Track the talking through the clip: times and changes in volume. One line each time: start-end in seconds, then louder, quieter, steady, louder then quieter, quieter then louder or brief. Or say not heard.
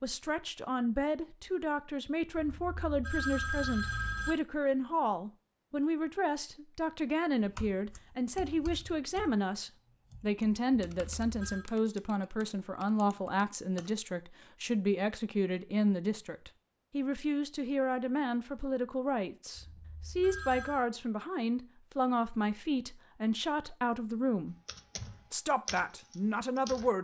0.0-24.6 steady
25.3-26.9 brief.